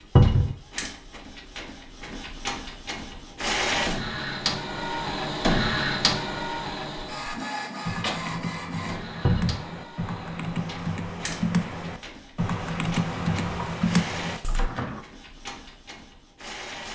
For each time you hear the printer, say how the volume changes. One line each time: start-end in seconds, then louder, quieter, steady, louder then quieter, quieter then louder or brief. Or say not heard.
0.0-16.9 louder then quieter.